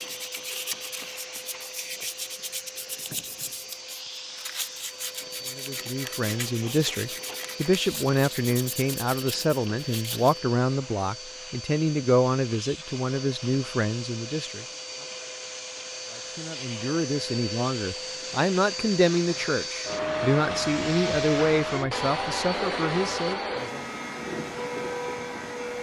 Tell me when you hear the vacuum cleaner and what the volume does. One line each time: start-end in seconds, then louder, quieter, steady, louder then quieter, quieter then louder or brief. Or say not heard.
0.0-25.7 louder.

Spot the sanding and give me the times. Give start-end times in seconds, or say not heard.
0.0-10.3.